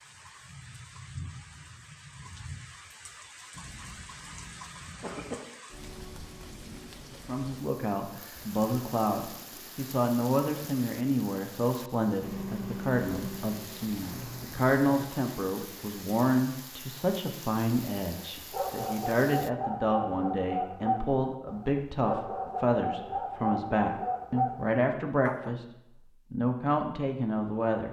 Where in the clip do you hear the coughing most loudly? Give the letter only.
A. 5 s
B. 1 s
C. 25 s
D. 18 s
A.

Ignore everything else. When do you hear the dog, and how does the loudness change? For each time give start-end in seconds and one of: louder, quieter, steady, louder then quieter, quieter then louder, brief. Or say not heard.
18.4-25.6 steady.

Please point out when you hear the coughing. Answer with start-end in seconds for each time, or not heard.
3.5-5.3.